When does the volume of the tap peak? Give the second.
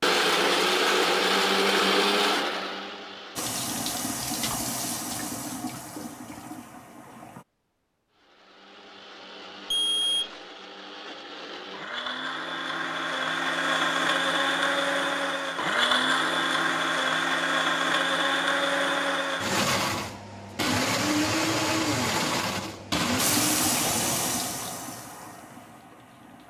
24 s.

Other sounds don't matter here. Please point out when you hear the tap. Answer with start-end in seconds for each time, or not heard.
3.4-7.5, 23.1-26.4.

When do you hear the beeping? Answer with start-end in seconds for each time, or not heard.
9.7-10.3.